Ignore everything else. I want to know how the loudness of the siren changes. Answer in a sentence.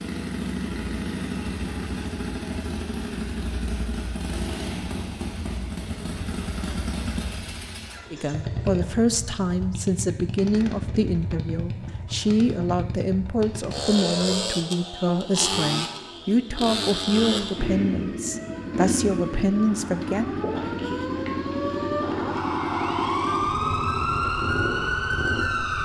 The volume of the siren goes up.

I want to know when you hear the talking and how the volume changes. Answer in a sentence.
You can hear the talking from 8.1 to 20.2 s, at a steady volume.